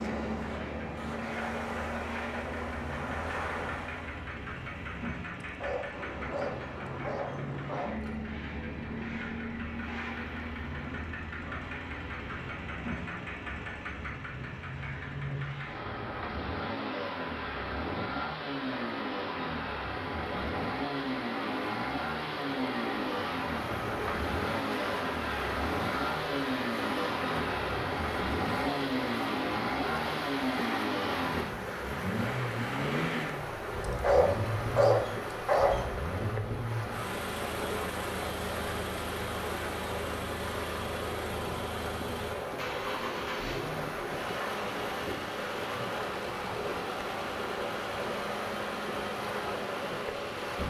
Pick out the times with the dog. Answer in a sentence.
The dog can be heard from 5.4 to 8.1 s and from 34.0 to 35.8 s.